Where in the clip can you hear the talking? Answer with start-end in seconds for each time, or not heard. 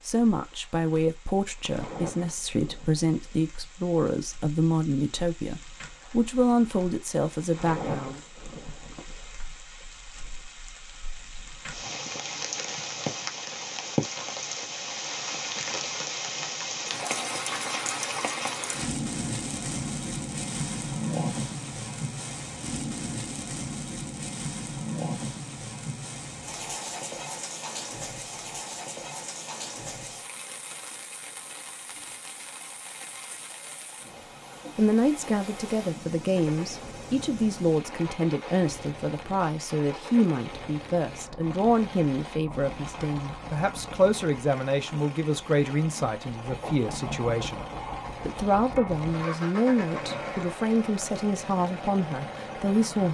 0.1-8.2, 34.8-47.6, 48.2-53.0.